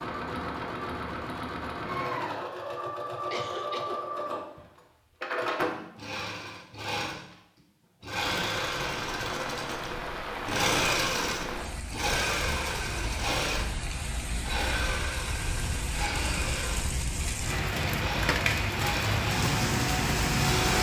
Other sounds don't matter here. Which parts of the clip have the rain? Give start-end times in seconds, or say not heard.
8.2-20.7.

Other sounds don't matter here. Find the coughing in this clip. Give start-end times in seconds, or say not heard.
3.3-4.0.